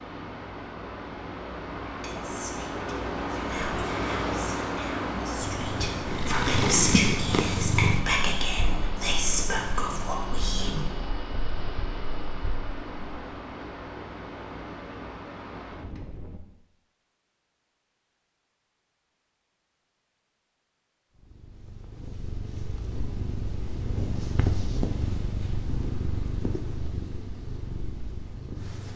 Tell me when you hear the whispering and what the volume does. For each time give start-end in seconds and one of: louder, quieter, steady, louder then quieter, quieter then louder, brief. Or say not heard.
2.0-10.8 louder.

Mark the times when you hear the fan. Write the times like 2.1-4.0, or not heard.
0.0-16.4.